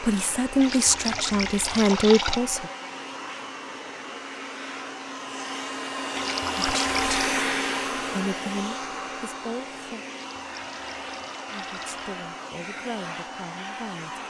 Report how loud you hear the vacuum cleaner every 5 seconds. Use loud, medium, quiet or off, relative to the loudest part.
medium, loud, medium.